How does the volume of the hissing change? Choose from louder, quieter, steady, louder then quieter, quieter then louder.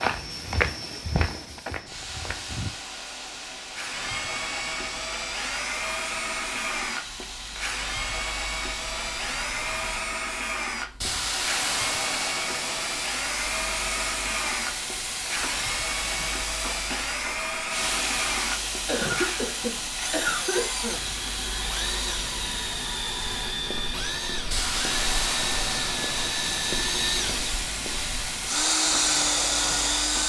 louder.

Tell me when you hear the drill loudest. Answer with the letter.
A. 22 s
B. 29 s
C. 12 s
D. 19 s
B.